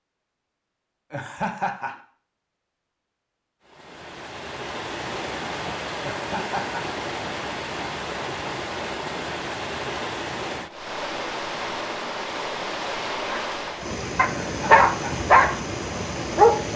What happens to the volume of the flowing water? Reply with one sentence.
The loudness of the flowing water stays about the same.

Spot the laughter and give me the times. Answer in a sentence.
The laughter can be heard from 1.1 to 1.9 s, from 6.0 to 6.8 s and from 14.3 to 15.2 s.